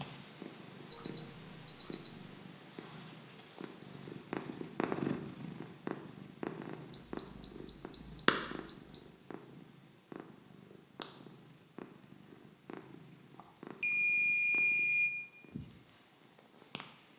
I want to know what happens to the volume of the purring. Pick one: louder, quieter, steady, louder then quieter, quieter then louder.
louder then quieter.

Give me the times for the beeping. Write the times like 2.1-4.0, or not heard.
0.9-2.1, 6.9-9.2, 13.3-15.1.